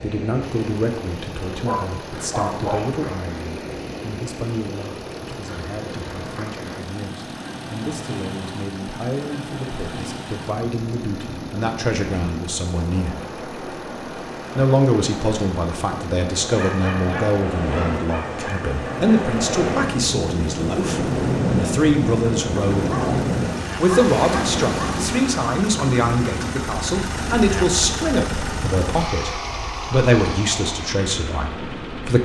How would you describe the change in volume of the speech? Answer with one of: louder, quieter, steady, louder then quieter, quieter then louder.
louder.